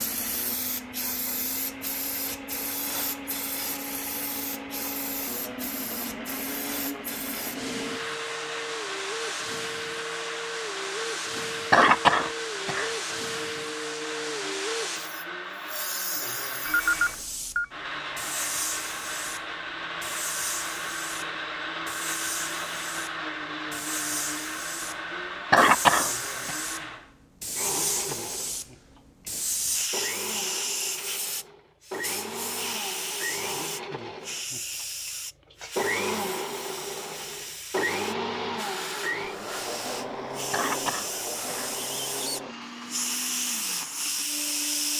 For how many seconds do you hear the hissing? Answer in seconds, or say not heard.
45 s.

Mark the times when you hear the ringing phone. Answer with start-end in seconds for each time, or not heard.
16.6-17.6.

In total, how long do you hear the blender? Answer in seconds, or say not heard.
45 s.